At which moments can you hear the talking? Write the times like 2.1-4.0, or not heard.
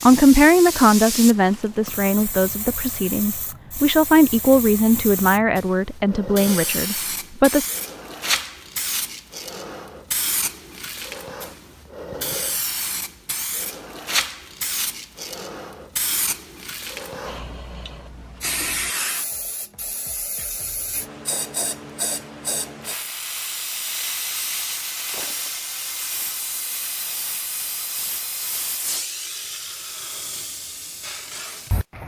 0.0-7.7.